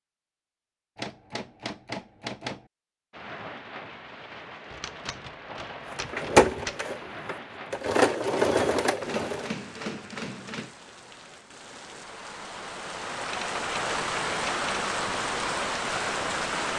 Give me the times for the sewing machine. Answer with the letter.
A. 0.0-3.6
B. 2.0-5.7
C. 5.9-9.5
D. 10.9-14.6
C.